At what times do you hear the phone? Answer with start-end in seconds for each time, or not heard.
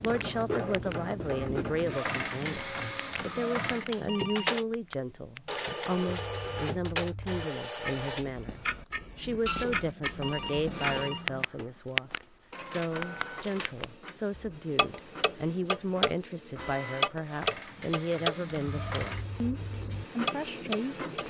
3.3-4.6, 9.7-11.4, 18.4-19.1.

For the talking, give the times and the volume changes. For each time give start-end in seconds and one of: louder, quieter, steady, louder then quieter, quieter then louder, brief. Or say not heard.
0.0-21.2 steady.